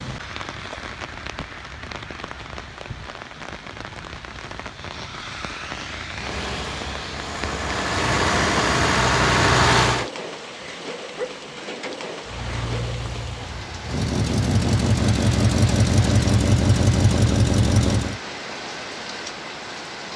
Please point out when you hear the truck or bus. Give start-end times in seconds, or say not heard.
6.2-10.1, 12.2-18.2.